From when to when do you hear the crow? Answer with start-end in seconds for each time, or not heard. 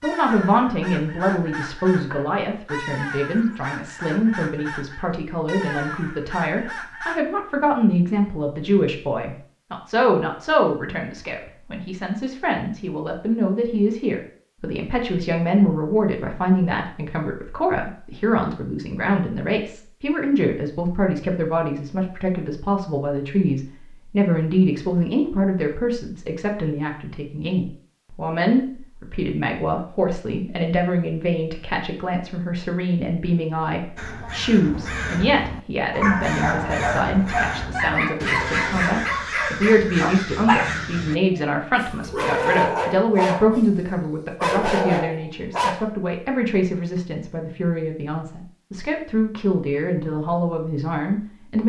0.0-7.2, 34.0-41.2.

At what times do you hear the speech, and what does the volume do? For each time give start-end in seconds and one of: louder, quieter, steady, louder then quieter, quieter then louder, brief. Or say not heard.
0.0-51.6 steady.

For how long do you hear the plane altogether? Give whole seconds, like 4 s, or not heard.
not heard.